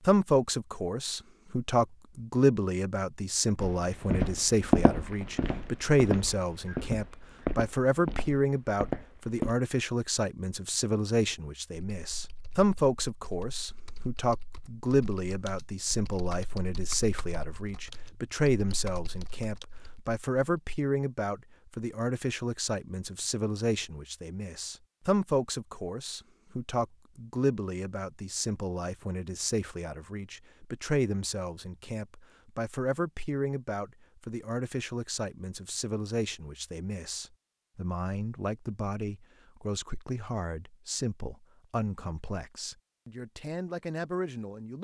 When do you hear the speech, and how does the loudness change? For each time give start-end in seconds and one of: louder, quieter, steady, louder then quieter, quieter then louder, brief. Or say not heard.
0.1-44.7 quieter.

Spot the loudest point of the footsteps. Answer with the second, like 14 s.
5 s.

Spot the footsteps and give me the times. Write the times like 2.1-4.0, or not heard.
3.6-9.6.